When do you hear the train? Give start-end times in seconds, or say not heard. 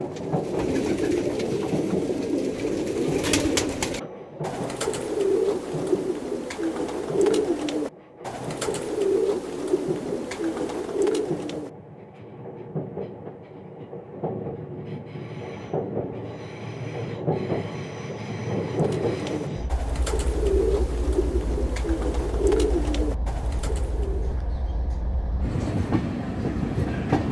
0.0-27.2.